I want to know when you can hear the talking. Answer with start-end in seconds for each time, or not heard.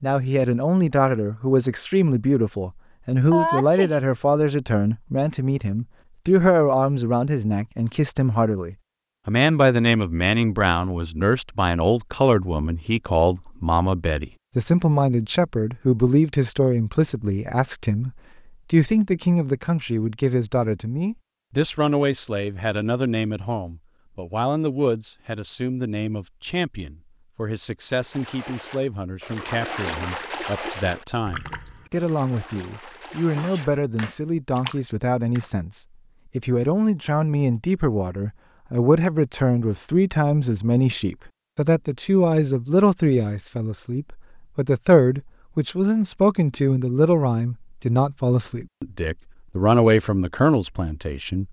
0.0-51.4.